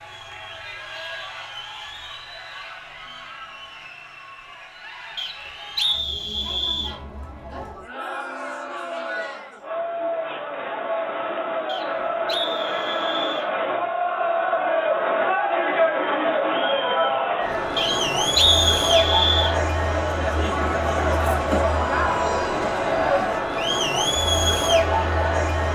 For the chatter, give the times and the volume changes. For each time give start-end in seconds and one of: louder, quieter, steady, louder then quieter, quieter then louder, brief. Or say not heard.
0.0-25.6 louder.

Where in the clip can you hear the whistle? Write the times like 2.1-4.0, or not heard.
5.2-7.0, 11.7-13.5, 17.8-19.6.